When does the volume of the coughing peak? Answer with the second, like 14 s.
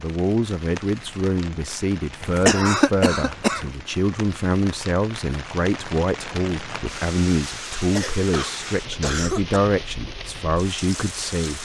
3 s.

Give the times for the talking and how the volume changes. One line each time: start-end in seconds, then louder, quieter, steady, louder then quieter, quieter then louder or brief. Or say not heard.
0.0-11.5 steady.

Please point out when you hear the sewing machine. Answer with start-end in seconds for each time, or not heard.
not heard.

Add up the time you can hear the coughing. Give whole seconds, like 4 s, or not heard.
3 s.